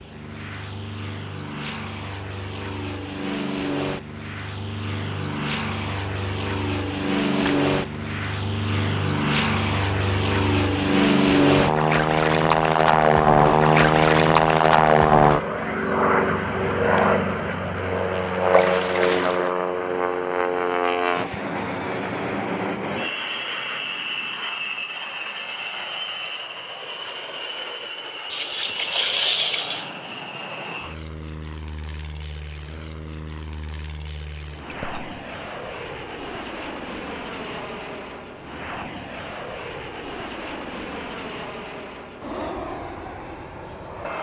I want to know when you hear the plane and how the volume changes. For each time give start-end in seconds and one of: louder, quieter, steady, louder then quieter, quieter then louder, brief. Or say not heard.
0.0-44.1 louder then quieter.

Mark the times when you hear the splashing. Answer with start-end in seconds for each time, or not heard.
7.3-8.0, 18.5-19.5, 28.3-29.9, 34.7-35.2.